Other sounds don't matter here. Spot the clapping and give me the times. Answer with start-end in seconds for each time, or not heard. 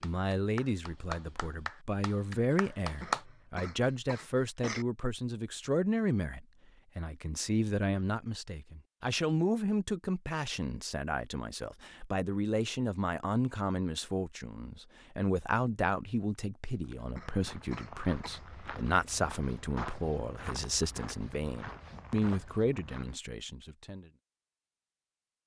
0.0-3.2.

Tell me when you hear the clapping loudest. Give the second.
3 s.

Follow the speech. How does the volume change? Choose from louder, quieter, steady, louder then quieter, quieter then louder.
steady.